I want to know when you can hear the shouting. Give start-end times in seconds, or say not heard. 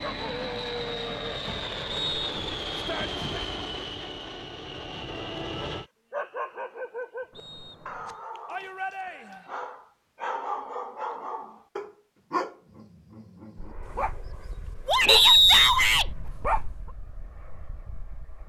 2.7-3.2, 8.4-9.4, 14.8-16.1.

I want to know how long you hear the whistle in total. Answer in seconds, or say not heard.
3 s.